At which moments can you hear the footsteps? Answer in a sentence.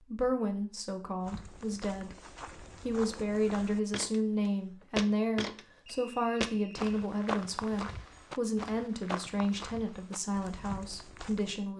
The footsteps can be heard from 1.2 to 11.6 s.